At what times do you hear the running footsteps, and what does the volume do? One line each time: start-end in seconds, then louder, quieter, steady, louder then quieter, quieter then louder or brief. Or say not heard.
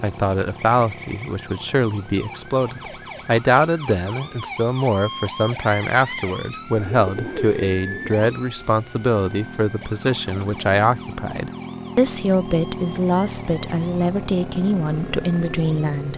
not heard.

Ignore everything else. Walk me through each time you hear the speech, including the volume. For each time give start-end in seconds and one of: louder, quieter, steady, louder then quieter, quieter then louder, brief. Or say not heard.
0.0-16.1 steady.